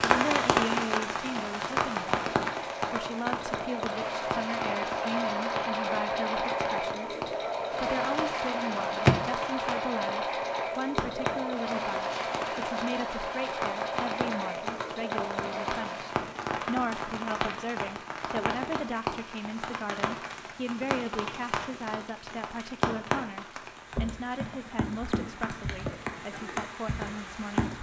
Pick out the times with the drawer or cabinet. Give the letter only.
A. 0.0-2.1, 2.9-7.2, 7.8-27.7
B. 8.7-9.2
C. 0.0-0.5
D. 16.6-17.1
B.